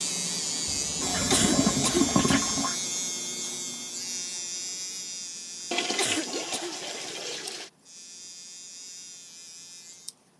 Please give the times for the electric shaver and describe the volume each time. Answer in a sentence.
The electric shaver can be heard from 0.0 to 10.3 s, getting quieter.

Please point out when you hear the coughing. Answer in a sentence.
The coughing can be heard from 1.3 to 2.1 s and from 6.0 to 6.8 s.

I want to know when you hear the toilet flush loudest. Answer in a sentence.
The loudest moment of the toilet flush is at 2 seconds.